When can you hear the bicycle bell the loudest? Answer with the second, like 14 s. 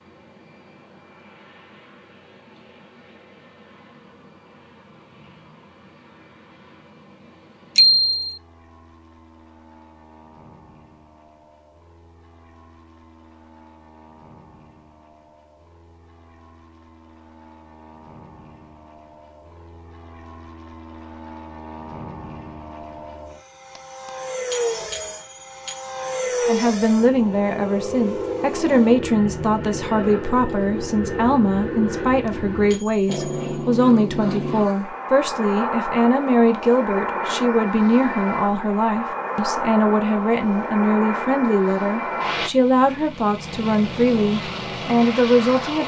8 s.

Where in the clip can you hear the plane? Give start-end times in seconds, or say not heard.
0.0-45.8.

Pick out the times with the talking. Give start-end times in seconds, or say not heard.
26.4-45.8.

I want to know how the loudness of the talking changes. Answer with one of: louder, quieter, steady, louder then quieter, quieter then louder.
steady.